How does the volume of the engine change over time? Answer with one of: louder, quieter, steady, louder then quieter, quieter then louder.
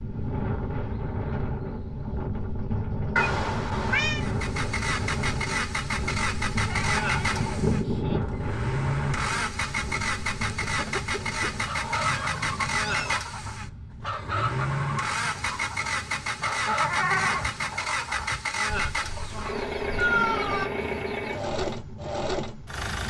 steady.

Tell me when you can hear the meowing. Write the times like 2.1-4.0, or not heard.
3.1-4.2, 11.8-13.2, 19.9-20.7.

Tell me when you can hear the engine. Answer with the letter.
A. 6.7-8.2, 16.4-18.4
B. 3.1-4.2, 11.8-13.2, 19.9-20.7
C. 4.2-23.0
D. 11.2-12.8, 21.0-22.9
C.